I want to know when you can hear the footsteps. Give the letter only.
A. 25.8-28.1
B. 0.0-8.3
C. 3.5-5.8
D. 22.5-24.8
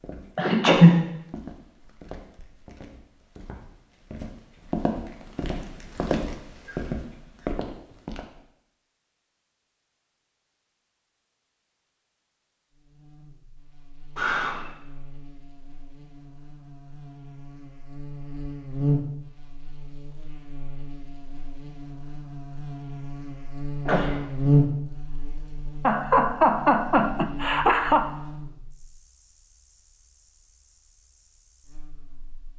B.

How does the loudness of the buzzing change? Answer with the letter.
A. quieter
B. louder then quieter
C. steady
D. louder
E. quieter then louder
B.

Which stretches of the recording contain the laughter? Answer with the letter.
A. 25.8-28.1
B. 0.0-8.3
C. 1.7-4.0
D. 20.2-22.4
A.